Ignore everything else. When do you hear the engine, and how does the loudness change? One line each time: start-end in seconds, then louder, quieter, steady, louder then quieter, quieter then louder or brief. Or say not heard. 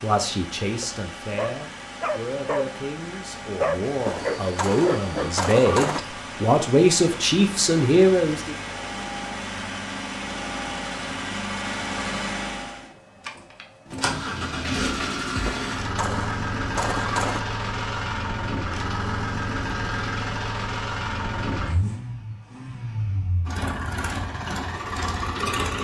0.0-25.8 louder.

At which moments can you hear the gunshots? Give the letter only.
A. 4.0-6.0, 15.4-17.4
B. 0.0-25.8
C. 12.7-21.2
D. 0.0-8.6
A.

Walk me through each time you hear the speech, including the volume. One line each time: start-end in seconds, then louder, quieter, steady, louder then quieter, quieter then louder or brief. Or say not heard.
0.0-8.6 louder.